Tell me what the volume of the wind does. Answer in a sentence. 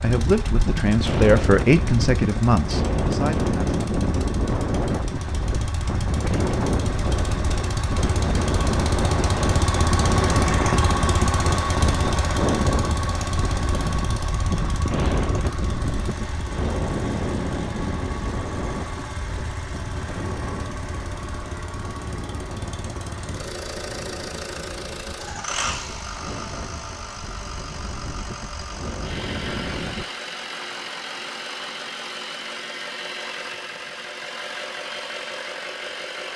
The volume of the wind goes down.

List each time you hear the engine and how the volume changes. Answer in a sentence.
The engine can be heard from 0.0 to 36.3 s, getting louder then quieter.